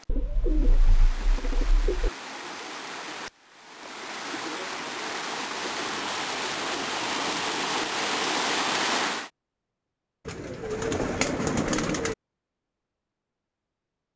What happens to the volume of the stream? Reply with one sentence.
The loudness of the stream goes up.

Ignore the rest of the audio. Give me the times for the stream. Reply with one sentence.
You can hear the stream from 0.0 to 9.3 s.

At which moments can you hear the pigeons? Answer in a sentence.
The pigeons can be heard from 0.1 to 2.1 s, from 5.6 to 7.6 s and from 10.2 to 12.2 s.